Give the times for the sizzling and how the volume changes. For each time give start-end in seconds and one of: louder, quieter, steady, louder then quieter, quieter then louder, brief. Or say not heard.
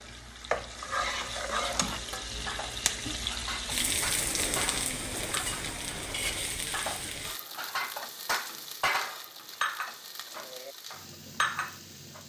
0.0-12.2 quieter.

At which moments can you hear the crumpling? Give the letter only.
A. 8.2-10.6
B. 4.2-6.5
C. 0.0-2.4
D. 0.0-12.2
B.